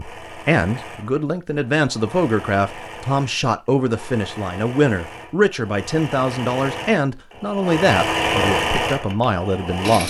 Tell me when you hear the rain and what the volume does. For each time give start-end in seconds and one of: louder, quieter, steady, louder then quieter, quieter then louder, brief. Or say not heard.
not heard.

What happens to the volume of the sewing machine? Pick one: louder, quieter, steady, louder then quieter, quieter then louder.
louder.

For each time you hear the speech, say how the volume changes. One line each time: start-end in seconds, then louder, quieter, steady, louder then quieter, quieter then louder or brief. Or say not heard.
0.0-10.0 steady.